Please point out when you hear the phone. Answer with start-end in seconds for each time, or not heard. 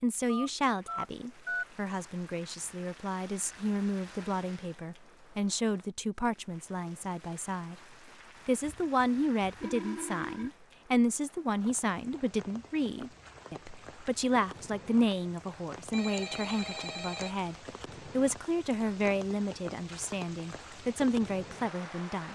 0.2-1.6, 8.6-10.5, 15.9-17.4.